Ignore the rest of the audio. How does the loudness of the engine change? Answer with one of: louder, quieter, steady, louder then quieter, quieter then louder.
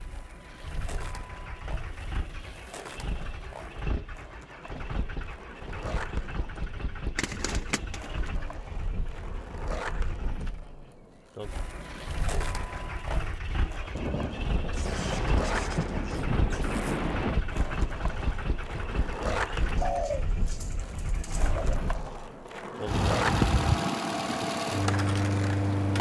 louder.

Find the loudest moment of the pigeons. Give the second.
20 s.